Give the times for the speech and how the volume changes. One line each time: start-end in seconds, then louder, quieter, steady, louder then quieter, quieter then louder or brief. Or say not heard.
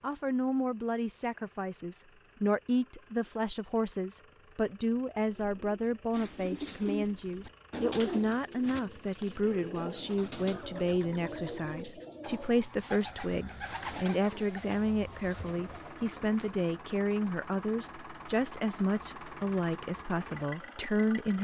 0.0-21.3 steady.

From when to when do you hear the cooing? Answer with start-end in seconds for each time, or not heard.
5.3-16.5.